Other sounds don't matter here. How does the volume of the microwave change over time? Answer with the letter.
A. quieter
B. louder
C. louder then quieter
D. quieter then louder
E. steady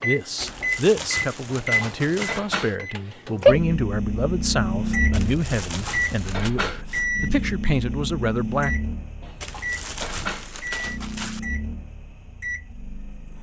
C.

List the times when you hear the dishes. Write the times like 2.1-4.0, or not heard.
1.4-2.8, 5.7-6.8, 9.2-10.5.